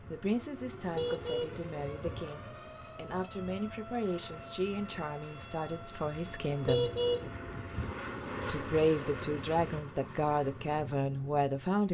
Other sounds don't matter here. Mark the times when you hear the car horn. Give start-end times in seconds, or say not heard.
0.9-2.2, 6.7-8.0.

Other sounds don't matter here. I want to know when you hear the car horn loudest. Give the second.
7 s.